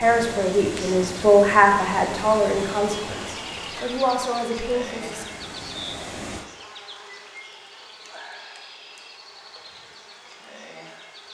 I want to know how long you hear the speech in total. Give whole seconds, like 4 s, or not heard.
5 s.